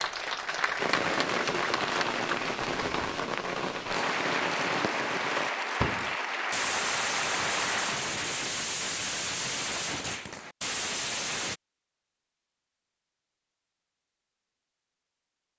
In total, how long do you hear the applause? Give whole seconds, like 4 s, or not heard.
8 s.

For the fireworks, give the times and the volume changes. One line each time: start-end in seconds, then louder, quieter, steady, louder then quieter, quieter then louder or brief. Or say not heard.
0.8-11.6 steady.